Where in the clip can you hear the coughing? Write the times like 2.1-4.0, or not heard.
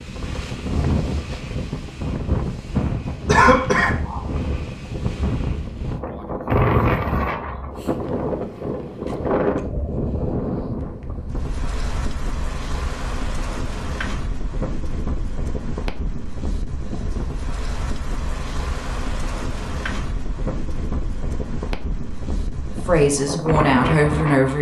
3.2-4.2.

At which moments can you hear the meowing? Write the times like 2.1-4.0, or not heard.
6.5-7.3.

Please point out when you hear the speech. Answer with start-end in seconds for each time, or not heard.
22.9-24.5.